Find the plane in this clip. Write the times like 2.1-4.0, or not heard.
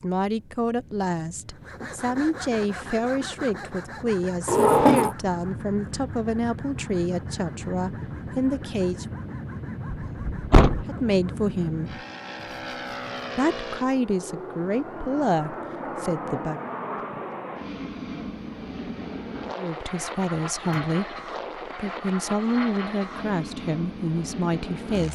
0.0-25.1.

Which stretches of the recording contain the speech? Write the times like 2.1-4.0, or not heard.
0.0-9.1, 10.8-12.0, 13.3-16.6, 19.6-25.1.